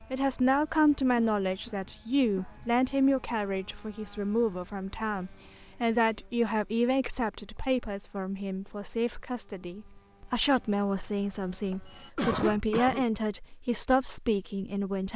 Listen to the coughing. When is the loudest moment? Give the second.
12 s.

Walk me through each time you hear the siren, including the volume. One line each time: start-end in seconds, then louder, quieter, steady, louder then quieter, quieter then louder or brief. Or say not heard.
not heard.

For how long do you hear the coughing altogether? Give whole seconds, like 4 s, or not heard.
3 s.